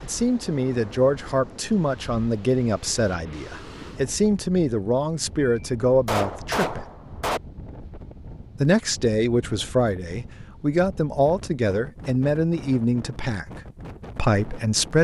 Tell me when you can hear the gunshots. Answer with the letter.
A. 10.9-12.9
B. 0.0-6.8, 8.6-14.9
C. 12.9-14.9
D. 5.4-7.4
D.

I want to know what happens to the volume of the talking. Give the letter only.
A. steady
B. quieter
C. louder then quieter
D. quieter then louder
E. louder
A.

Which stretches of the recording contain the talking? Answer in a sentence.
The talking can be heard from 0.0 to 6.8 s and from 8.6 to 14.9 s.